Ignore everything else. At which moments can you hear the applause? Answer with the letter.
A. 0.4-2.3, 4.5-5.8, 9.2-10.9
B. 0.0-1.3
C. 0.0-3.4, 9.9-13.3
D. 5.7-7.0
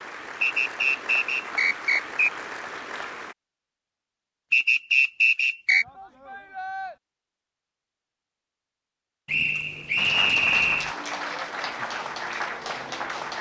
C.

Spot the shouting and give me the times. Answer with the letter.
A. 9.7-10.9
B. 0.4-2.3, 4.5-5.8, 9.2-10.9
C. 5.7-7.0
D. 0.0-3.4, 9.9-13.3
C.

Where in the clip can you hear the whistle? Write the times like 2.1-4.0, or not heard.
0.4-2.3, 4.5-5.8, 9.2-10.9.